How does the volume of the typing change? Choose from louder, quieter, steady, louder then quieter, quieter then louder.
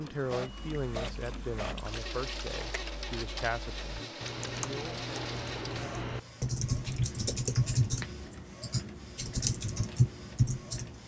louder.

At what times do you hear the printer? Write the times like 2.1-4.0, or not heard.
0.0-11.0.